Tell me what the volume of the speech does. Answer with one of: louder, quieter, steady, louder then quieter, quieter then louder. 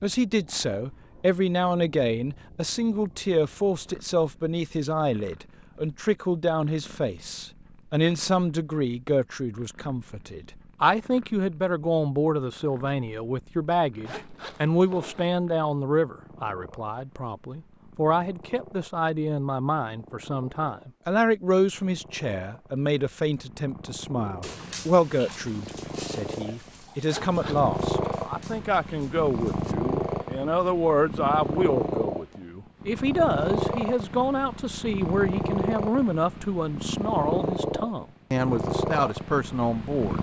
steady.